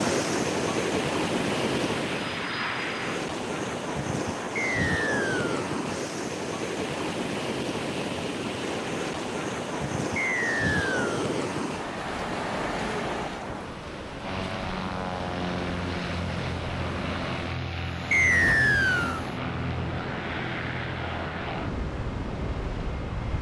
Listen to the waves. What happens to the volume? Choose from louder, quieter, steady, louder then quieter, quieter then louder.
quieter.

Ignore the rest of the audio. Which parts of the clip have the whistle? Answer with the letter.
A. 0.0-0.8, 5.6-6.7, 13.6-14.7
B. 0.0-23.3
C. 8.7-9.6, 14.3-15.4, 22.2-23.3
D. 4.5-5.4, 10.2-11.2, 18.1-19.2
D.